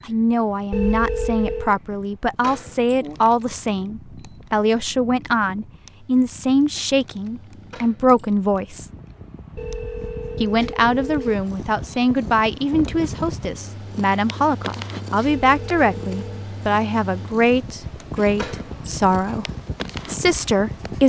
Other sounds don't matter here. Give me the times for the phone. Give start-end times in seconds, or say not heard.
0.7-1.8, 9.6-11.3, 15.2-16.5.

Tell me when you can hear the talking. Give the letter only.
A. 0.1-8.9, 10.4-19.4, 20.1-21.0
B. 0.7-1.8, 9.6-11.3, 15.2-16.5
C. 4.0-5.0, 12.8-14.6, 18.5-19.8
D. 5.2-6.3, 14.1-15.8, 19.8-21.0
A.